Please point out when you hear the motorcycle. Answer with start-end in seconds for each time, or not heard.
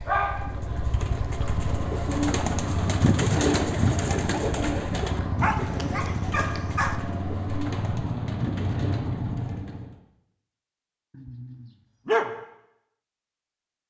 0.0-9.9.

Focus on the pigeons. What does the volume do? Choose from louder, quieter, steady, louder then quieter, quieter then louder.
louder then quieter.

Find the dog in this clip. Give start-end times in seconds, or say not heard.
0.1-1.5, 5.4-7.0, 11.2-12.3.